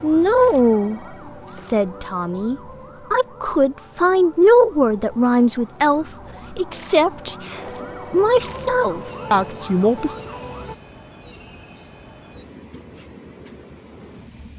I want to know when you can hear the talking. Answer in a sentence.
You can hear the talking from 0.0 to 10.2 s.